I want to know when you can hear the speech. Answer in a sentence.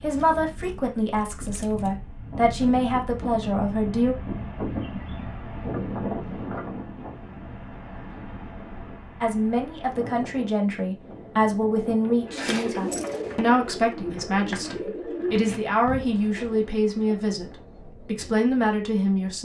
The speech can be heard from 0.0 to 4.2 s and from 9.2 to 19.3 s.